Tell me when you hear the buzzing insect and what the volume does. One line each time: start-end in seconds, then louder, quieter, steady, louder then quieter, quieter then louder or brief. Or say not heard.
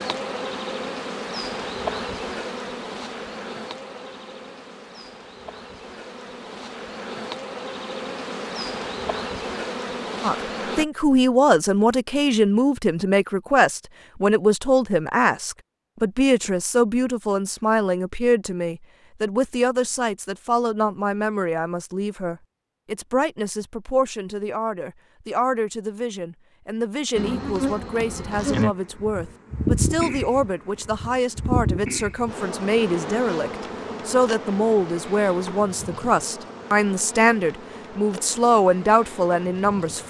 0.0-10.8 quieter then louder
27.1-40.0 quieter.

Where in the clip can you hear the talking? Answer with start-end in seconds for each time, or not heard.
10.2-40.0.